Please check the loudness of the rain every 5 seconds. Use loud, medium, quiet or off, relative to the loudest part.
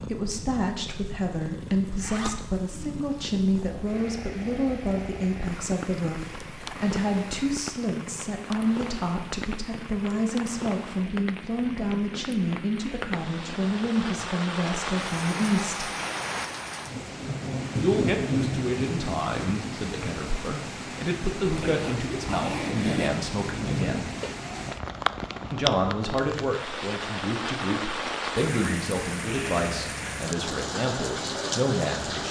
quiet, quiet, medium, loud, loud, loud, loud.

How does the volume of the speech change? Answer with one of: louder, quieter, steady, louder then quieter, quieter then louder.
steady.